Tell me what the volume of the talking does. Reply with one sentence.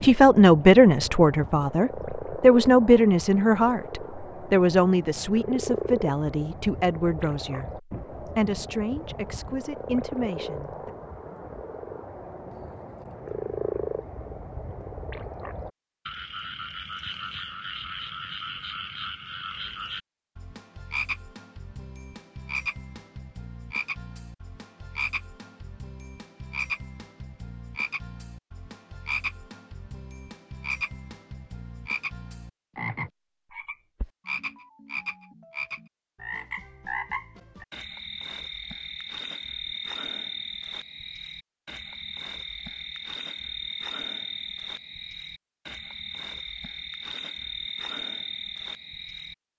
The volume of the talking goes down.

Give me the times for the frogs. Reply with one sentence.
The frogs can be heard from 0.0 to 49.4 s.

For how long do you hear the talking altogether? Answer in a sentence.
You can hear the talking for 11 seconds altogether.